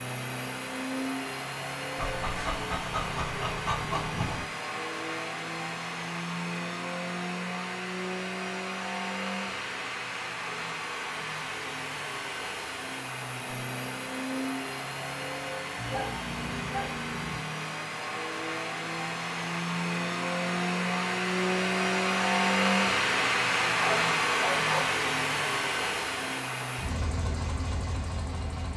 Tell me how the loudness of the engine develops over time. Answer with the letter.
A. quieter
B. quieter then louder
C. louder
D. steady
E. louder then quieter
C.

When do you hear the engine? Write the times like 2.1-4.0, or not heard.
0.0-28.7.